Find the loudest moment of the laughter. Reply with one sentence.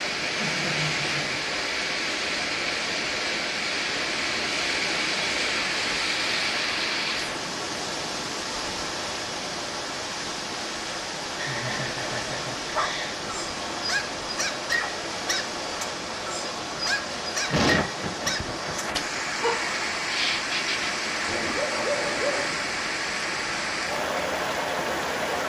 The loudest moment of the laughter is at 18 seconds.